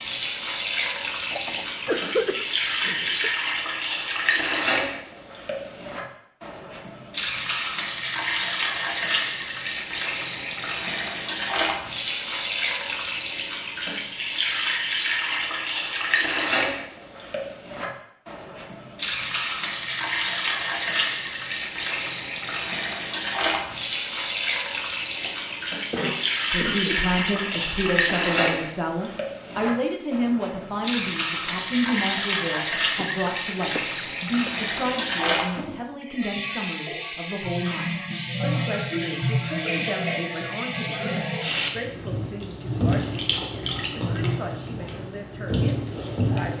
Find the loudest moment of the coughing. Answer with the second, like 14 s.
2 s.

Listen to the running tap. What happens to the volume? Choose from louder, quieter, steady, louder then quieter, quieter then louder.
steady.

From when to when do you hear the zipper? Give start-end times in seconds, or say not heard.
not heard.